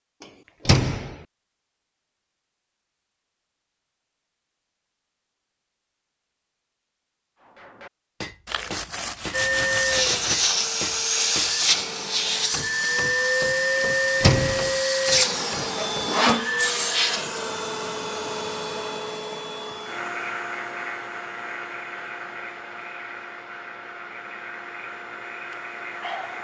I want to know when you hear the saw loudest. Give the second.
16 s.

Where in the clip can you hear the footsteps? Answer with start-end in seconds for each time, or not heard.
not heard.